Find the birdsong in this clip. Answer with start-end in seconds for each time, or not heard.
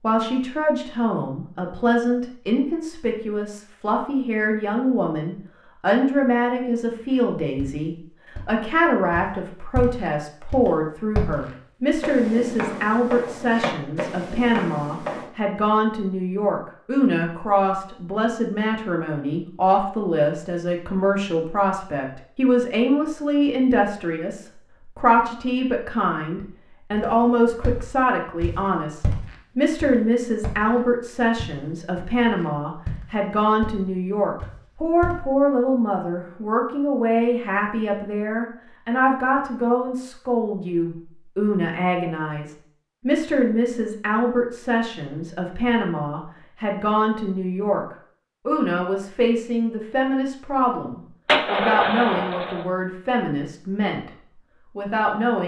not heard.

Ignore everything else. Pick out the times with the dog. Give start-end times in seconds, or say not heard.
not heard.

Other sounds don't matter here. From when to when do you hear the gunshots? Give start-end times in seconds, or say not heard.
51.2-52.6.